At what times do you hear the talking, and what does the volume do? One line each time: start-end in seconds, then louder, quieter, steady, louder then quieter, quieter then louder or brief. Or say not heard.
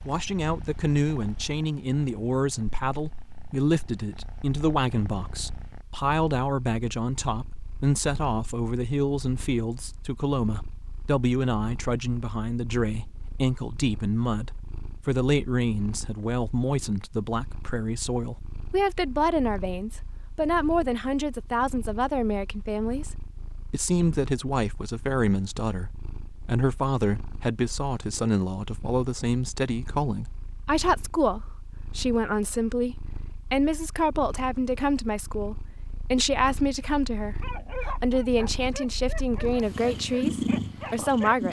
0.1-41.4 steady.